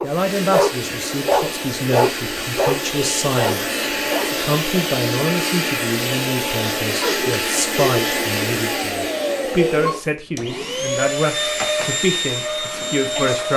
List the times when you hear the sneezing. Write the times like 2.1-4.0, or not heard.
7.0-8.0.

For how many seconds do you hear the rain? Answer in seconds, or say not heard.
not heard.